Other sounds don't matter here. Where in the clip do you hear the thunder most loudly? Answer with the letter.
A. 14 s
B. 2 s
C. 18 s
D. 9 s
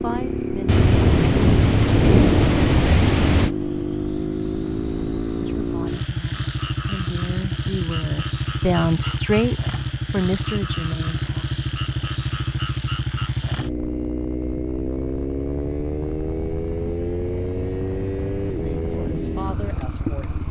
B.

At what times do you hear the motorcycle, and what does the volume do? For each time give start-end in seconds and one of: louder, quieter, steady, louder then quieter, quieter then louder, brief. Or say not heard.
0.0-20.4 steady.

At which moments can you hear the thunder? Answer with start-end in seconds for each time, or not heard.
0.7-3.5.